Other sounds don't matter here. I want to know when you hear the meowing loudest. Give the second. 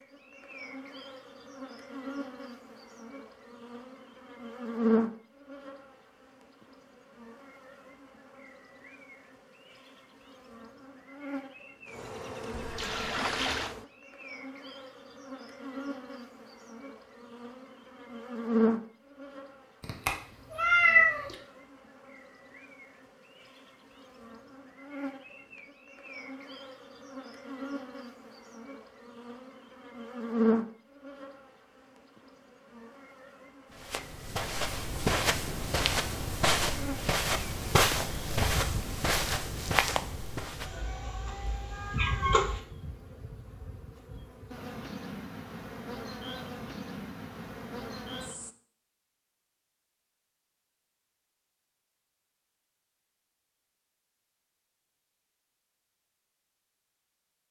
21 s.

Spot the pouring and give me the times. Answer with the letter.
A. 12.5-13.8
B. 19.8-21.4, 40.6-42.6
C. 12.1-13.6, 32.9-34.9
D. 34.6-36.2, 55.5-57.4
A.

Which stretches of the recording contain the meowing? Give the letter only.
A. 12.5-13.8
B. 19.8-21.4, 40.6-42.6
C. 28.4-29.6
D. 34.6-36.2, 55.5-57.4
B.